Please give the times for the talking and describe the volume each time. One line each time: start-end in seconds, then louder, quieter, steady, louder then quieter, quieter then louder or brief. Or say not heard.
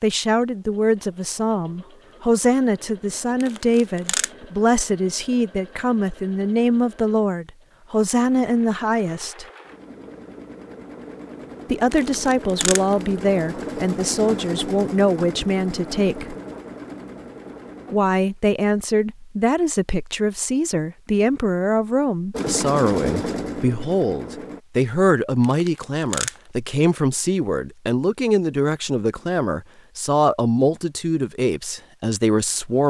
0.0-9.4 steady
11.7-16.4 steady
17.9-32.8 steady.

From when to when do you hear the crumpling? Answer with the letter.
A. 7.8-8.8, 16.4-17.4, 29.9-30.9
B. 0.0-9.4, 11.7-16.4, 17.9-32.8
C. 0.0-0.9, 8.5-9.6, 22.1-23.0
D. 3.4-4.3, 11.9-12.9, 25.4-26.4
D.